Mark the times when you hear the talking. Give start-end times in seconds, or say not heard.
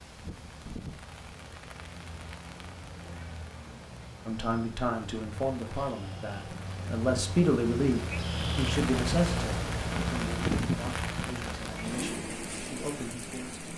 4.2-13.7.